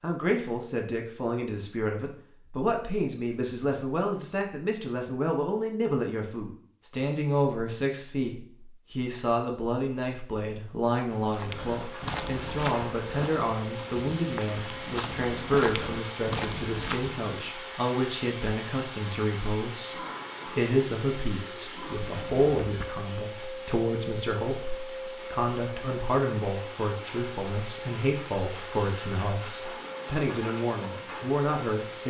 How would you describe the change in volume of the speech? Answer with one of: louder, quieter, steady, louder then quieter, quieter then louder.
steady.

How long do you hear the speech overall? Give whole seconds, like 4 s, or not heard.
32 s.